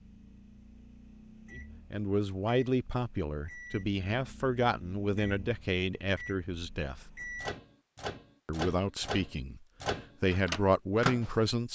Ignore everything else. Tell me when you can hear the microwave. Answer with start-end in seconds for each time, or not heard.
0.0-11.7.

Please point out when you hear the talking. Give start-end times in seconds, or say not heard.
1.6-7.0, 8.4-11.7.